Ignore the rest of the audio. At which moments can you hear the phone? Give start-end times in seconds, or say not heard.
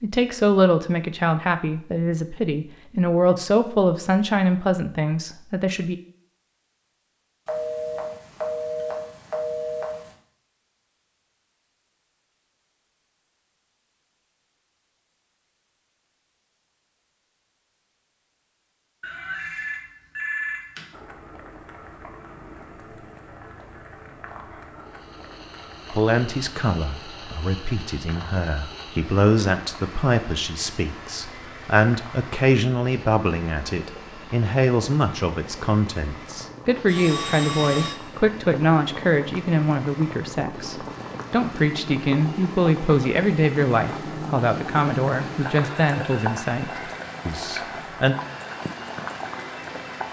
7.5-10.1, 19.0-20.9, 36.9-37.9.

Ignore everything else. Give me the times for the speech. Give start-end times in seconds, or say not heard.
0.0-6.0, 25.9-48.1.